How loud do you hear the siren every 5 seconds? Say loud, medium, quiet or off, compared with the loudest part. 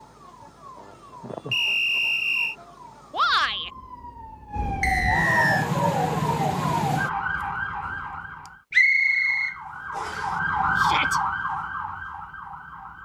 medium, loud, loud.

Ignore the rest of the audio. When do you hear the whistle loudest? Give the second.
9 s.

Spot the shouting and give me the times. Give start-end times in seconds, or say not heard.
3.1-3.7, 10.8-11.2.